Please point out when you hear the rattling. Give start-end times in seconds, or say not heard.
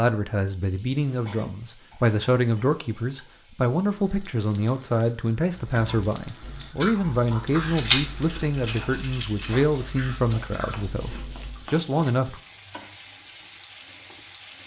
7.7-9.7.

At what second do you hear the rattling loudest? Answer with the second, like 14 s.
8 s.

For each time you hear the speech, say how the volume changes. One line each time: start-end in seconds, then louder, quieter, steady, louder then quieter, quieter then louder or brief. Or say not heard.
0.0-12.4 steady.